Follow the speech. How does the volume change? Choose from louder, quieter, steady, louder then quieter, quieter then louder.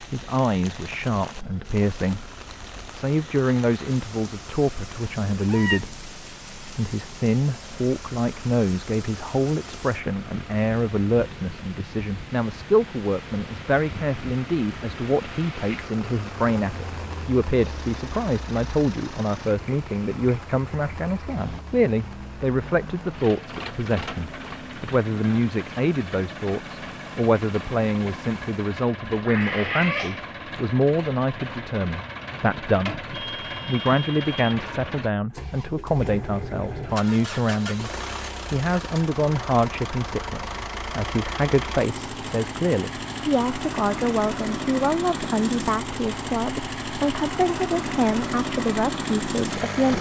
steady.